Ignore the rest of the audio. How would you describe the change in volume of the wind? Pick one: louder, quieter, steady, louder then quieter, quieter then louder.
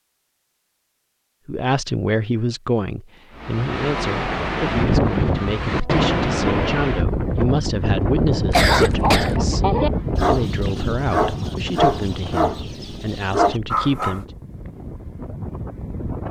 quieter.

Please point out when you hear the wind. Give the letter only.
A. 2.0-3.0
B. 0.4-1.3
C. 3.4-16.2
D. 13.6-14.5
C.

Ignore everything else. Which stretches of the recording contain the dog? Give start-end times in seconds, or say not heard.
8.8-14.2.